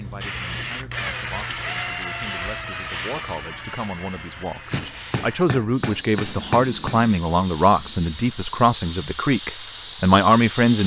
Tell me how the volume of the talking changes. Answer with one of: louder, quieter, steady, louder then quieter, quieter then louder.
louder.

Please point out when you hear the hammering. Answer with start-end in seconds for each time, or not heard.
4.7-7.0.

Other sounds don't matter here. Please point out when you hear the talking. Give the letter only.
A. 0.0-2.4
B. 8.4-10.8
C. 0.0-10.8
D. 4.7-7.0
C.